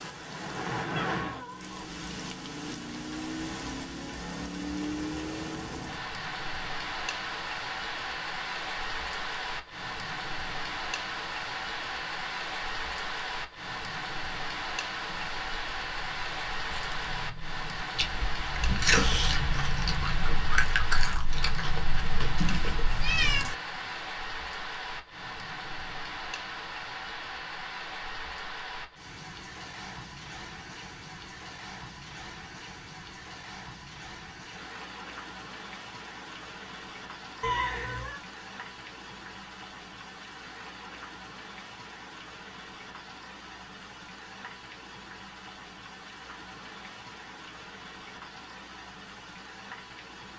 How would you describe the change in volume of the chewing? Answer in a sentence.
The loudness of the chewing goes up, then down.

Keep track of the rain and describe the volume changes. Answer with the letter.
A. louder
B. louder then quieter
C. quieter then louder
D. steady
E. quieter
E.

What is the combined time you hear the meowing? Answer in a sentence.
The meowing can be heard for 3 seconds in total.